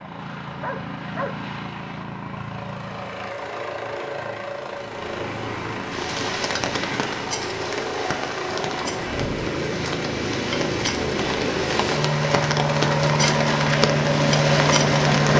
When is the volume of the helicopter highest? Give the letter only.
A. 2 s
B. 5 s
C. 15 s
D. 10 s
C.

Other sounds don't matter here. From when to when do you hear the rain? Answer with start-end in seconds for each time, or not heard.
5.9-15.3.